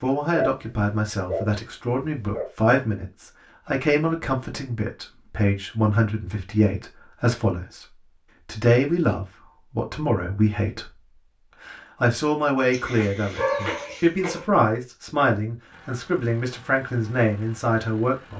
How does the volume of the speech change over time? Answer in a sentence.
The volume of the speech stays about the same.